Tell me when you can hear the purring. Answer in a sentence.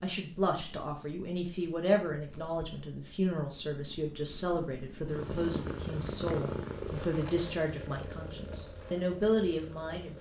You can hear the purring from 0.1 to 10.1 s.